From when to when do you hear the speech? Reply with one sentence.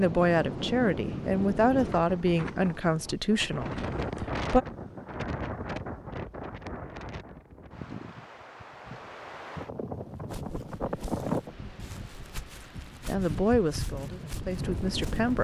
The speech can be heard from 0.0 to 4.7 s and from 13.1 to 15.4 s.